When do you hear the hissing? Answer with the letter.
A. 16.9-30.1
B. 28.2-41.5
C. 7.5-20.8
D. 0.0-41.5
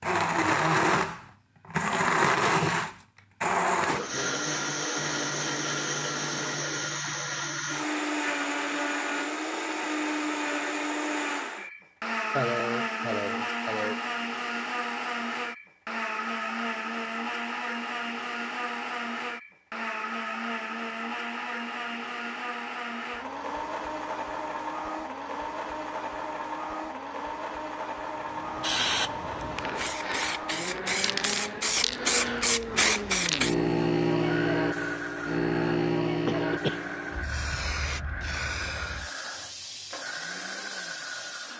B.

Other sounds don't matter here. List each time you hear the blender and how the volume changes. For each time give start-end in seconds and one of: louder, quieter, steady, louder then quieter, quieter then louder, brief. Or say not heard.
0.0-41.5 quieter.